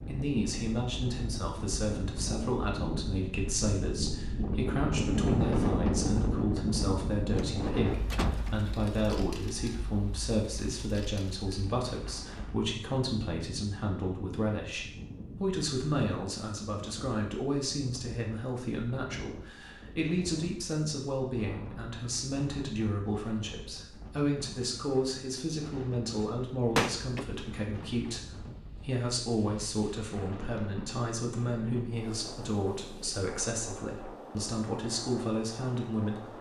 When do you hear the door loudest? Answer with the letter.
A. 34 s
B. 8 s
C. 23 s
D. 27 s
D.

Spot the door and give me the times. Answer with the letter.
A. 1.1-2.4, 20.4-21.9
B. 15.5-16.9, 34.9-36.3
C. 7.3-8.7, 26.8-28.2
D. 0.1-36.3
C.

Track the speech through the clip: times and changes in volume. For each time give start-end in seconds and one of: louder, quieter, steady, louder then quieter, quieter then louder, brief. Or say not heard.
0.1-36.3 steady.